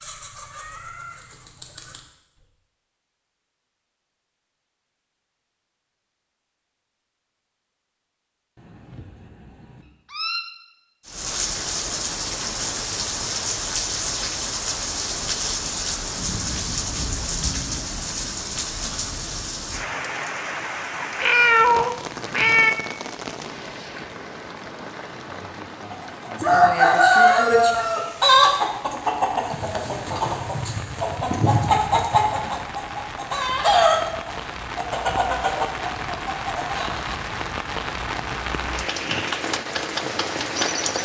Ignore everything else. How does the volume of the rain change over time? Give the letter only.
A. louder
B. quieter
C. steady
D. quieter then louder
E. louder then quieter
D.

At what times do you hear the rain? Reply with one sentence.
You can hear the rain from 11.1 to 41.0 s.